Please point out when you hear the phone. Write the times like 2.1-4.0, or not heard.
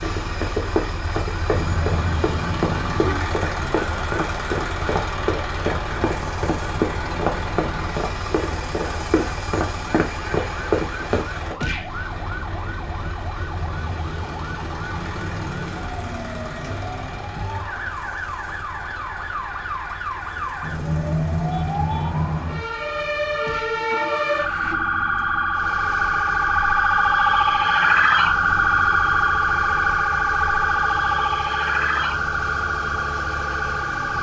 not heard.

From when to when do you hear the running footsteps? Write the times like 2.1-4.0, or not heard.
0.0-11.6.